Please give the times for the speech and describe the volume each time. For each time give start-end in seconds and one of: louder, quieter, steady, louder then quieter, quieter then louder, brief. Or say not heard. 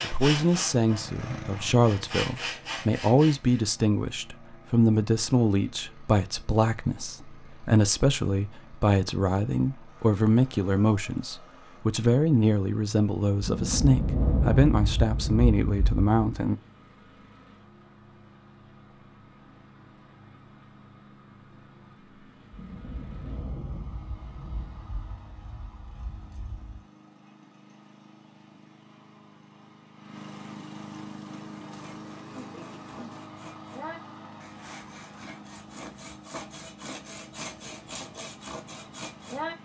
0.0-16.6 steady.